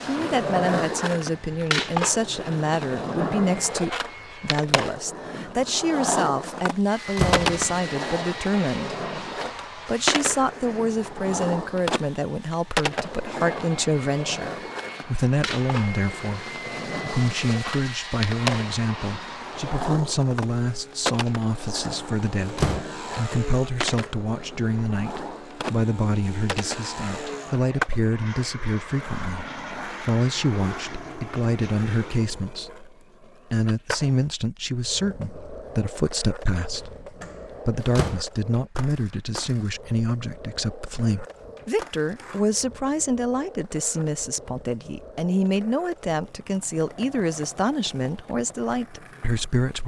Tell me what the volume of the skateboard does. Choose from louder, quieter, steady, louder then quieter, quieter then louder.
quieter.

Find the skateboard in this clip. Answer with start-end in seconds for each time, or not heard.
0.0-49.8.